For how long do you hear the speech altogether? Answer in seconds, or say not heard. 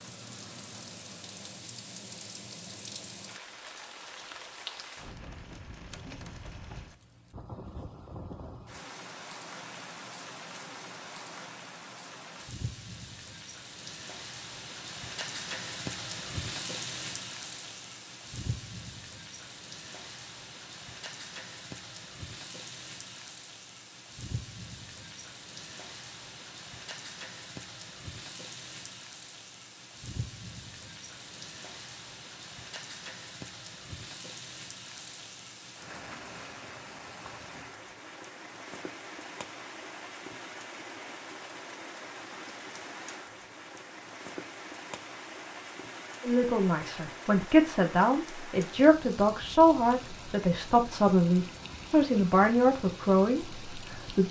8 s.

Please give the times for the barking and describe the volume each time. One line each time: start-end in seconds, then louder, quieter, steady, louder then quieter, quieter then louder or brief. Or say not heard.
not heard.